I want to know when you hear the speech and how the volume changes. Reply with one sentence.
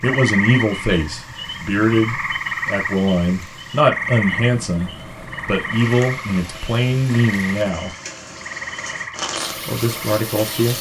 You can hear the speech from 0.0 to 8.0 s, at a steady volume; and briefly from 9.3 to 10.7 s.